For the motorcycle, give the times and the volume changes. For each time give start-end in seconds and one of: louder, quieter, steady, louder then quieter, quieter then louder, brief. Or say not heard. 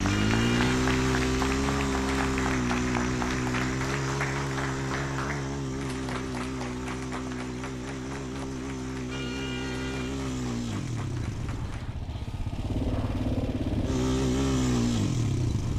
0.0-15.7 quieter then louder.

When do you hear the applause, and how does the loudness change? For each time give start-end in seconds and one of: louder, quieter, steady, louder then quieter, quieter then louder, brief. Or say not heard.
0.0-11.9 quieter.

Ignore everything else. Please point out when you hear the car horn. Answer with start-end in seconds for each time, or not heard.
0.1-0.7, 9.1-10.2.